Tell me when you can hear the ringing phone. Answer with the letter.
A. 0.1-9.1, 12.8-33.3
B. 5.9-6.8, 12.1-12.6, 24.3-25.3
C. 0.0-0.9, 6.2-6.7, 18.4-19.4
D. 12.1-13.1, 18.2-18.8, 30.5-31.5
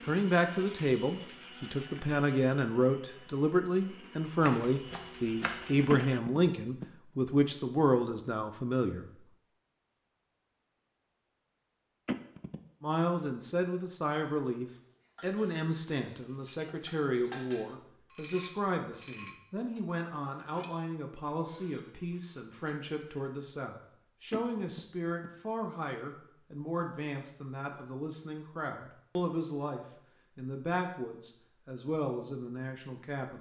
B.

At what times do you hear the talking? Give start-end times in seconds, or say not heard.
0.1-9.1, 12.8-33.3.